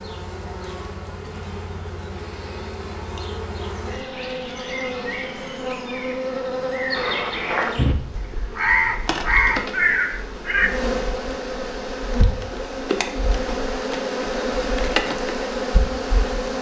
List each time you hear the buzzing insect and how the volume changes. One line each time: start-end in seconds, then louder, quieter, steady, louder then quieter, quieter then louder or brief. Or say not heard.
0.0-16.5 louder.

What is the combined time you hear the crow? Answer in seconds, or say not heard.
4 s.